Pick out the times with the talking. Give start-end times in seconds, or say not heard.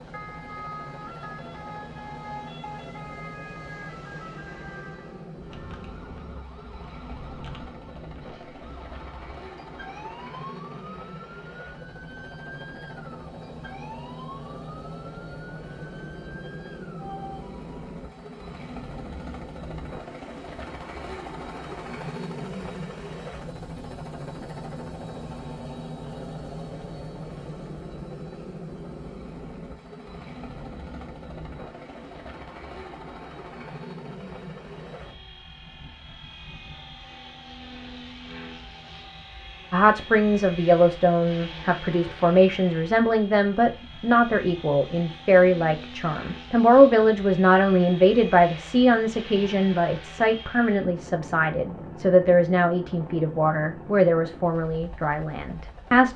39.7-56.1.